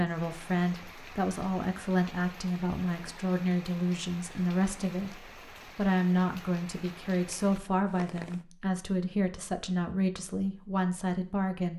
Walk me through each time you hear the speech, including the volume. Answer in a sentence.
You can hear the speech from 0.0 to 11.7 s, at a steady volume.